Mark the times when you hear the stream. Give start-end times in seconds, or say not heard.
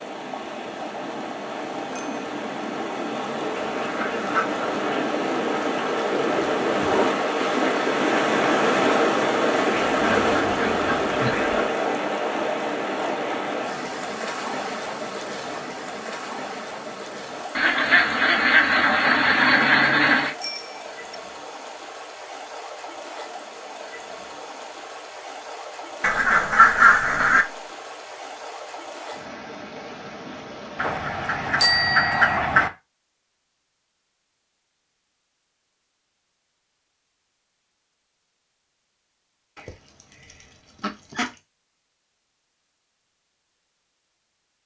0.0-31.6.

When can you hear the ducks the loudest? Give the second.
27 s.